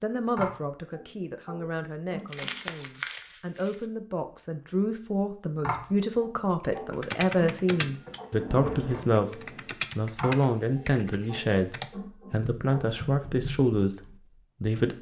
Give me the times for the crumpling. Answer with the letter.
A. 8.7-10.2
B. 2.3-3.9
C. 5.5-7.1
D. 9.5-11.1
B.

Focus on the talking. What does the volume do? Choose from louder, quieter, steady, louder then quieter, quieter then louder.
louder.